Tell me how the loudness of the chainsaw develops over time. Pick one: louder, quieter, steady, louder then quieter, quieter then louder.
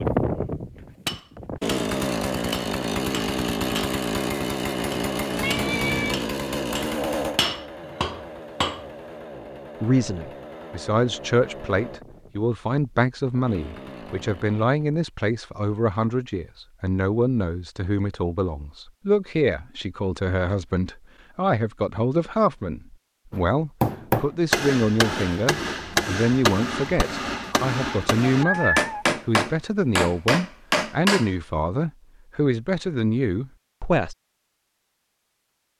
quieter.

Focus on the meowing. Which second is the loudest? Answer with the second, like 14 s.
29 s.